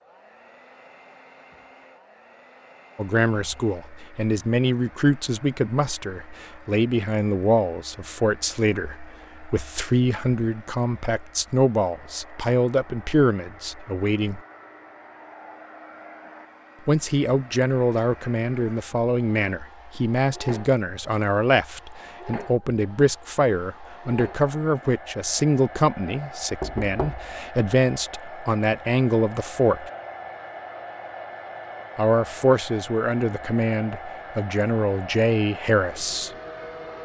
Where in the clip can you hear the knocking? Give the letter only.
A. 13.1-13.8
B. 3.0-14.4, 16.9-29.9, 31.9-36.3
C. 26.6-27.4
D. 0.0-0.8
C.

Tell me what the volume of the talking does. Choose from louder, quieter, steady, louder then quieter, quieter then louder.
steady.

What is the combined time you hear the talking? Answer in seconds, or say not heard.
29 s.